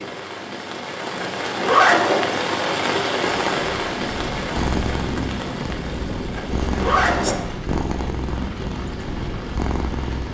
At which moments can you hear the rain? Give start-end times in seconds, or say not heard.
0.0-10.2.